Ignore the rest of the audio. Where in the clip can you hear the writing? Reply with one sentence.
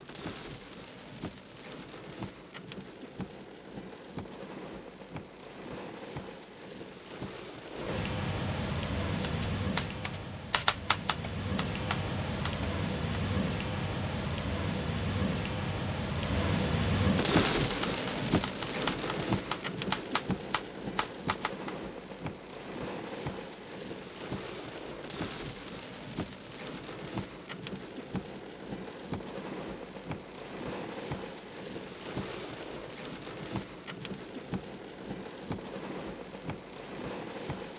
The writing can't be heard in this clip.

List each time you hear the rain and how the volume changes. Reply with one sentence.
The rain can be heard from 0.0 to 37.7 s, getting louder then quieter.